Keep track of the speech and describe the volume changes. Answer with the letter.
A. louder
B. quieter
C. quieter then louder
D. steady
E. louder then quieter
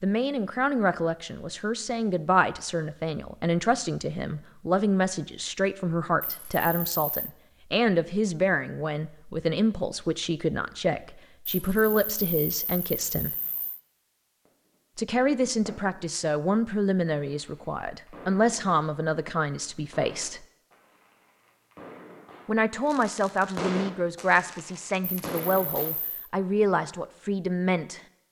D.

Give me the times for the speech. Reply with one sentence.
You can hear the speech from 0.0 to 13.3 s, from 14.9 to 20.4 s and from 22.4 to 28.0 s.